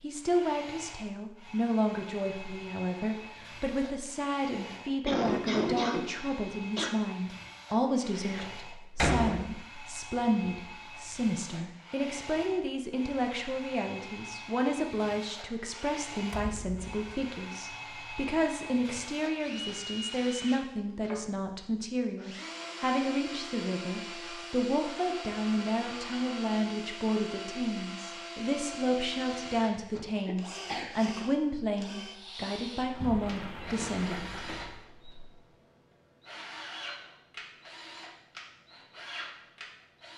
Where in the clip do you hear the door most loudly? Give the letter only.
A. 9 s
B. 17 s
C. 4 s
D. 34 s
A.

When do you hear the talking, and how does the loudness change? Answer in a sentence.
The talking can be heard from 0.0 to 34.4 s, at a steady volume.